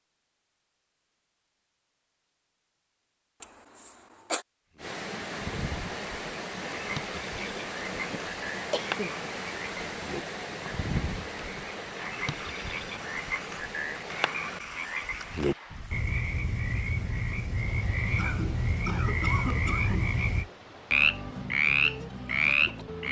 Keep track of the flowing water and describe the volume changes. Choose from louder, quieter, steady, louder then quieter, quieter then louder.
quieter.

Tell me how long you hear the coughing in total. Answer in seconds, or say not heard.
4 s.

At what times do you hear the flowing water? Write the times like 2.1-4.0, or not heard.
4.8-23.0.